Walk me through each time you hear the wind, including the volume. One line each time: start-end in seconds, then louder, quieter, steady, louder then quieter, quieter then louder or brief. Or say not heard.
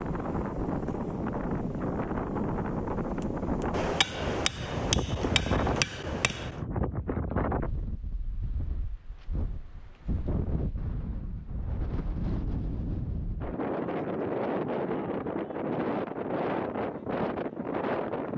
0.0-18.3 quieter then louder.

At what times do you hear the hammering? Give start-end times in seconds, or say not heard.
3.7-6.6.